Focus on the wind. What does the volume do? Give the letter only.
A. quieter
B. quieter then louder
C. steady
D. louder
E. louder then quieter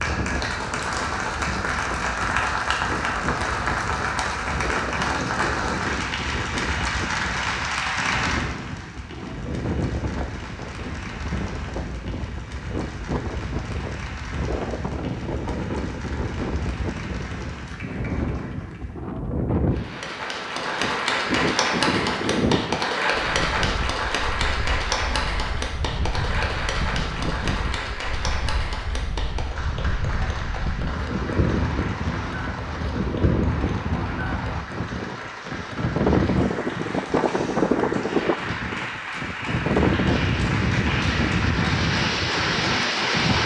D.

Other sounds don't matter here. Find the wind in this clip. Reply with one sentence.
You can hear the wind from 0.0 to 43.4 s.